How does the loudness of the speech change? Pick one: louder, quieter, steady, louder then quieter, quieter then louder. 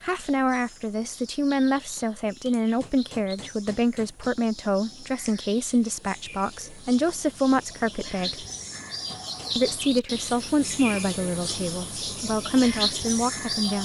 steady.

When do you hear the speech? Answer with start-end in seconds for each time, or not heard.
0.0-8.4, 9.6-13.8.